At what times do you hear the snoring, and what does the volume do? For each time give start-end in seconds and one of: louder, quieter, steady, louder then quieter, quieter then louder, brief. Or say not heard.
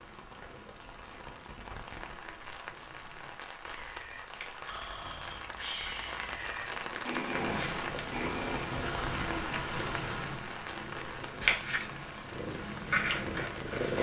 3.6-8.8 louder.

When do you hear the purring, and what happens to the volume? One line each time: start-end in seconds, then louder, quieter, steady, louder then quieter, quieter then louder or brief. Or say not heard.
0.0-13.9 louder.